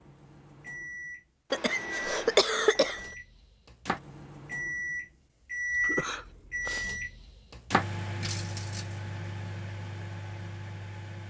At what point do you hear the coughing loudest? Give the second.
3 s.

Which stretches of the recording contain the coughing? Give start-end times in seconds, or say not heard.
1.5-3.0, 5.8-6.9.